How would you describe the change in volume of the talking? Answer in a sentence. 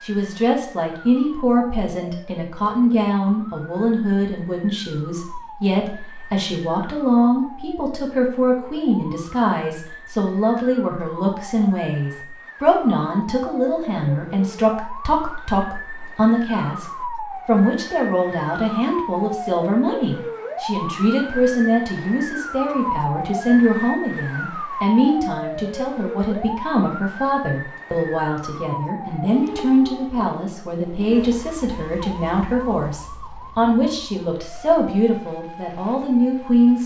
The volume of the talking stays about the same.